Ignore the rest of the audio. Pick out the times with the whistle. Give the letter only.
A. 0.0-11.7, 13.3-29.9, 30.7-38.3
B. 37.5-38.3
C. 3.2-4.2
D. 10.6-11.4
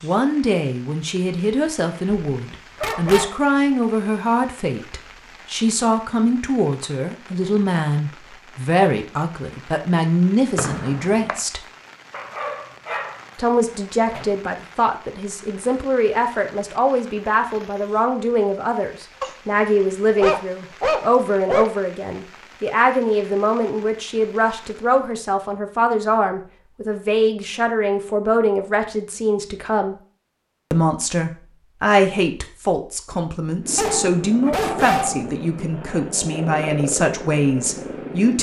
D.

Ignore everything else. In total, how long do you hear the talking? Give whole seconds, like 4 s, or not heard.
36 s.